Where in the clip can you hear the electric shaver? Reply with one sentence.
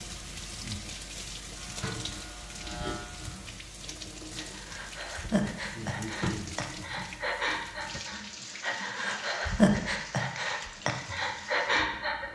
You can hear the electric shaver from 1.6 to 3.5 s.